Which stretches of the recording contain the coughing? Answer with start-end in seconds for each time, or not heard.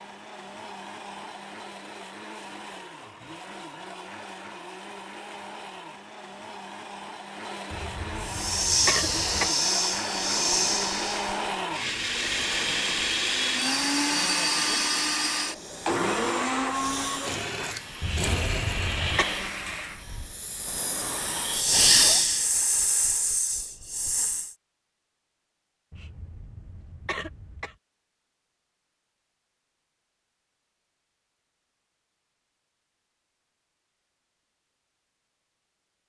7.7-9.5, 18.0-19.3, 25.9-27.8.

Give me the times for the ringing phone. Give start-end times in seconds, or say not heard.
not heard.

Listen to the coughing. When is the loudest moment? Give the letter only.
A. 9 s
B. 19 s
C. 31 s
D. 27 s
A.